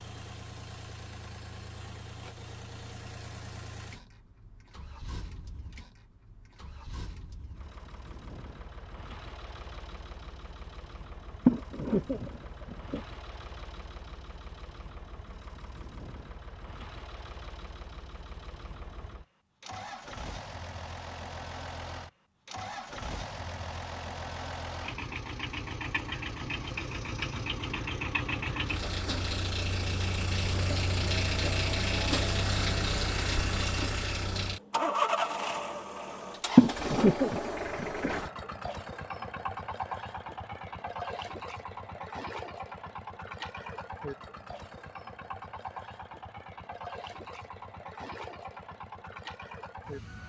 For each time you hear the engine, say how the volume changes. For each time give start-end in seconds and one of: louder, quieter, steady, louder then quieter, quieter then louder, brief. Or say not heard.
0.0-50.2 louder then quieter.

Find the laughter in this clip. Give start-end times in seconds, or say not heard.
11.4-13.0, 36.5-38.1.